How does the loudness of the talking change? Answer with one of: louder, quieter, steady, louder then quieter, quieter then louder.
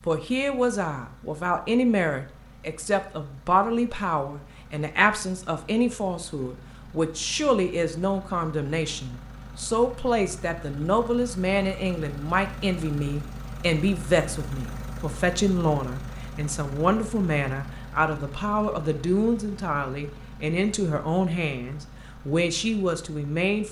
steady.